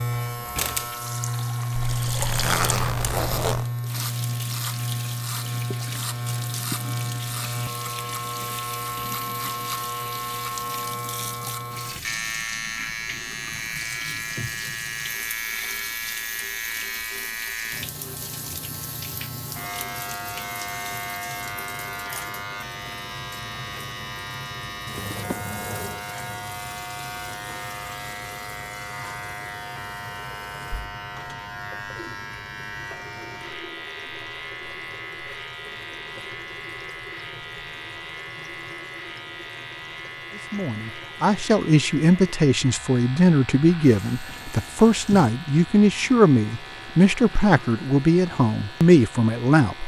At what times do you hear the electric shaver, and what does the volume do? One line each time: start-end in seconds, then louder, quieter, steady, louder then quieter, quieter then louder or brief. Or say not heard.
0.0-49.8 quieter.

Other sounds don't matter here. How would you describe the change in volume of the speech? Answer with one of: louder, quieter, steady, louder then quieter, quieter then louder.
steady.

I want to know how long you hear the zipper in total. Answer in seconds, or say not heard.
2 s.